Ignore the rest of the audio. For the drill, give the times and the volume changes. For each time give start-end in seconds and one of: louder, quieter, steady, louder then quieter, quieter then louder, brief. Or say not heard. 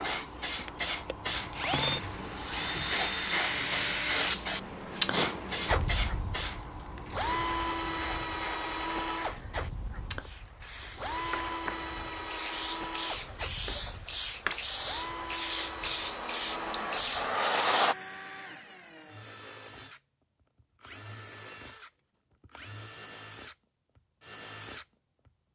0.0-25.3 quieter.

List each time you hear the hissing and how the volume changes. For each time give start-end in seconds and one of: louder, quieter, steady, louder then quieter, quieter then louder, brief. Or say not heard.
0.0-17.9 quieter then louder.